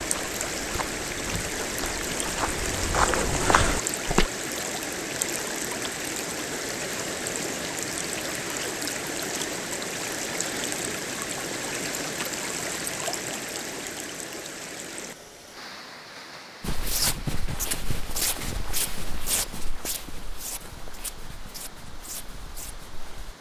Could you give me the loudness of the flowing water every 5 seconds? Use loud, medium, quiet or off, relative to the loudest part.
loud, loud, loud, quiet, quiet.